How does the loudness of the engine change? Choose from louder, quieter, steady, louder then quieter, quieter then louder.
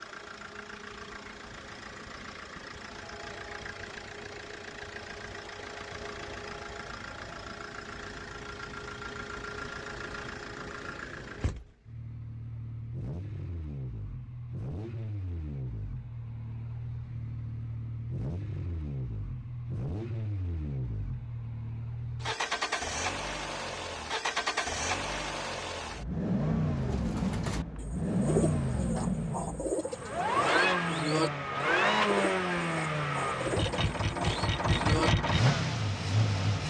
louder.